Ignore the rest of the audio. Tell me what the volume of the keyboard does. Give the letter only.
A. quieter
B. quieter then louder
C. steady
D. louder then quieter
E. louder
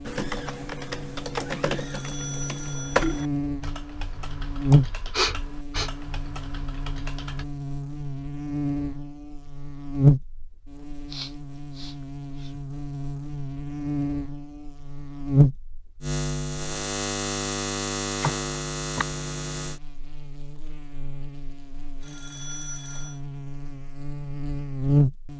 A.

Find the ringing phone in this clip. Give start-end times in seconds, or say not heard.
1.8-3.3, 22.0-23.2.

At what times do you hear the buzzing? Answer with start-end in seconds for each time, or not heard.
0.0-25.3.